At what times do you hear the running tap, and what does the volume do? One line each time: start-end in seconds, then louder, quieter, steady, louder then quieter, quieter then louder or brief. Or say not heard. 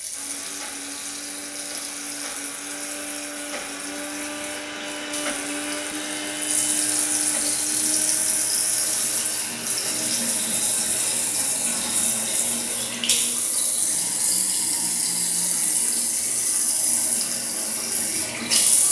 0.0-18.8 louder.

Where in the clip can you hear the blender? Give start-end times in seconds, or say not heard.
0.1-15.7.